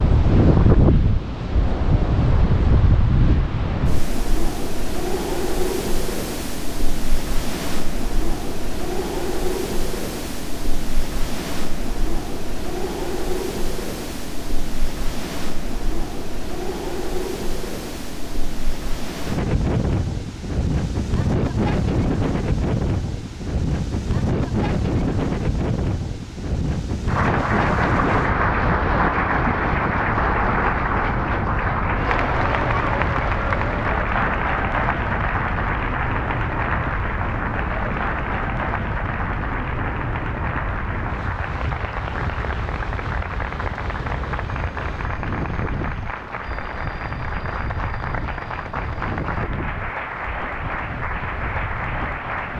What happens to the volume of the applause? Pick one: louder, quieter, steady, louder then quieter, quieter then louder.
quieter.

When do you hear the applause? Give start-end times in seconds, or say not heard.
27.1-52.5.